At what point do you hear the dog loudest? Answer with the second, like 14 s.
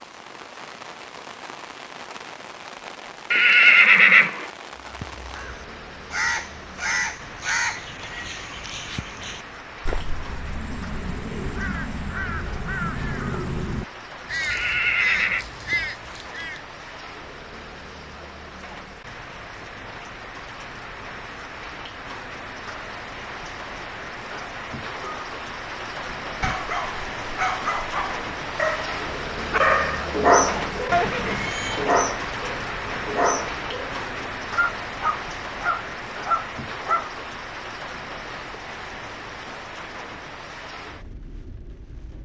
30 s.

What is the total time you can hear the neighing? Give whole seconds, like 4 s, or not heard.
3 s.